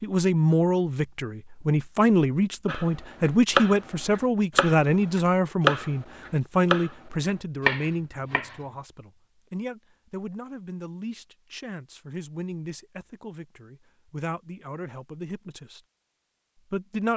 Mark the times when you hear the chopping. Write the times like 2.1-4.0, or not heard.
2.6-6.9, 7.7-8.6.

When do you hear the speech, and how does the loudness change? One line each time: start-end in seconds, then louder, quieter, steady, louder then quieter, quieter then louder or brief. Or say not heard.
0.0-15.8 quieter
16.6-17.1 brief.